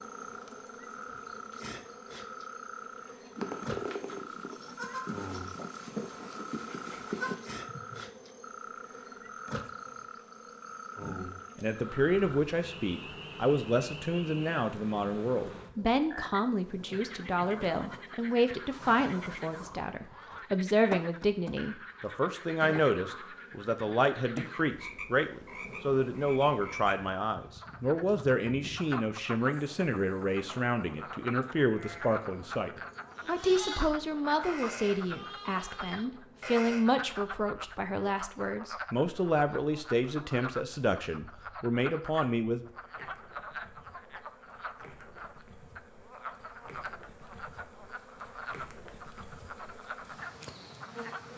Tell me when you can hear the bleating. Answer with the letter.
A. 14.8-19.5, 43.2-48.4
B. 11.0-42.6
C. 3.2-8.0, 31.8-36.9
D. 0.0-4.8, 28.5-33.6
C.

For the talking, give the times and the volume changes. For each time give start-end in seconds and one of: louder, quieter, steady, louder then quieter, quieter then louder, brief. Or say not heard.
11.0-42.6 steady.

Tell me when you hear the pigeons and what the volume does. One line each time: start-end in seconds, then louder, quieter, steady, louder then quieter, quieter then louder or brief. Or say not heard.
not heard.